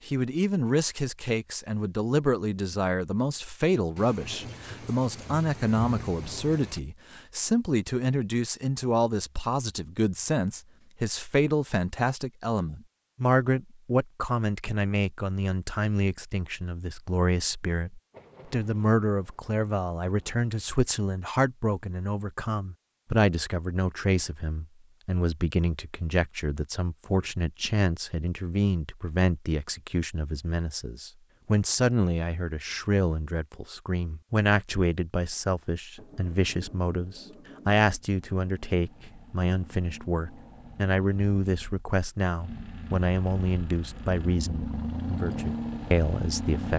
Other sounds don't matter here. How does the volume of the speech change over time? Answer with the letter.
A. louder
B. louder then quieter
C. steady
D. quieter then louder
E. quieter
C.